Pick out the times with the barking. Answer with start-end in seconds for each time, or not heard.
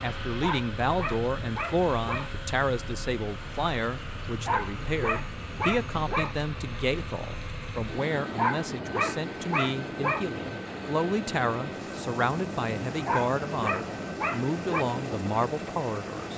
0.4-2.3, 4.5-6.3, 8.3-10.2, 13.1-14.8.